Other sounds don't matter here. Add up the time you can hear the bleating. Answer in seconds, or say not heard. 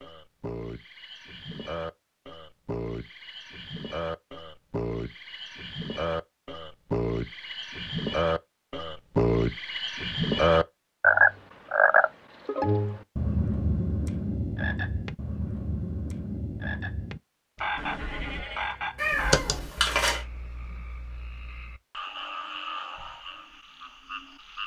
2 s.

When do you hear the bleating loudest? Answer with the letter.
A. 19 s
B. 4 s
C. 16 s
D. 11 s
A.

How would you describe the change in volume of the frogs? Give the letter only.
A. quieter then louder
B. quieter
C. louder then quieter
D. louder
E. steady
C.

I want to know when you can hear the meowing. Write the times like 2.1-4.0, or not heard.
18.9-20.2.